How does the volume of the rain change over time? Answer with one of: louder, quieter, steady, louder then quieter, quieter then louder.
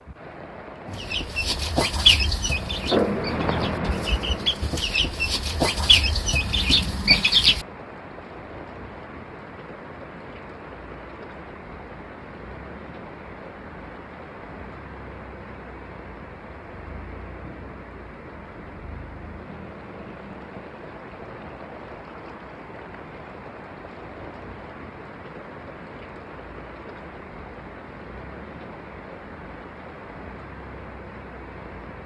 quieter.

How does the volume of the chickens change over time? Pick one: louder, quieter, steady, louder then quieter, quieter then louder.
quieter then louder.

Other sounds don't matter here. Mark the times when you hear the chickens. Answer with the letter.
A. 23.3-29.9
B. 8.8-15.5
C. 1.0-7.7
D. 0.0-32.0
C.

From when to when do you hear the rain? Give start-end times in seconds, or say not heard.
0.0-32.0.